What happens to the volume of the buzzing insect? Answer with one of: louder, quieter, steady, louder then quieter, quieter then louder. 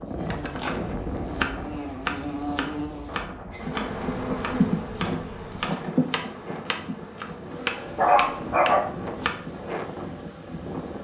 louder then quieter.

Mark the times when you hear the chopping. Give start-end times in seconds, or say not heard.
0.2-9.4.